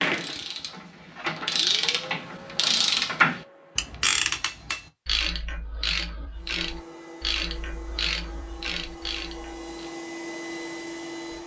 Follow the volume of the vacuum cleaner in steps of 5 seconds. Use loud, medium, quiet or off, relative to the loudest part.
loud, medium, loud.